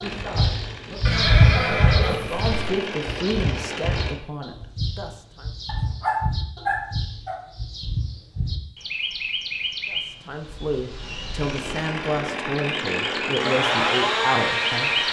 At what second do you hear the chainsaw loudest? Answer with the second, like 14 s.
14 s.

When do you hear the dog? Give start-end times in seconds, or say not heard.
5.7-7.4.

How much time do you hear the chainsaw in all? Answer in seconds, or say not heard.
8 s.